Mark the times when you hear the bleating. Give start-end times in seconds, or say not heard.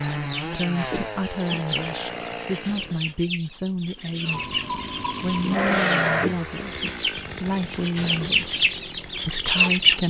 4.3-6.2.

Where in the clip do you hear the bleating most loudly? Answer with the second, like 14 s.
6 s.